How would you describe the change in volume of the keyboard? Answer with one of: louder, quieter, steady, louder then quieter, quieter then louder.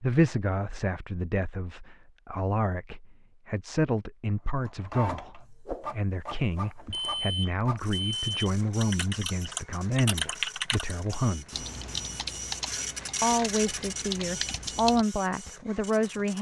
quieter then louder.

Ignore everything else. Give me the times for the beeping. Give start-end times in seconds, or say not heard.
6.7-8.3.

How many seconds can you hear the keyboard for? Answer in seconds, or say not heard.
7 s.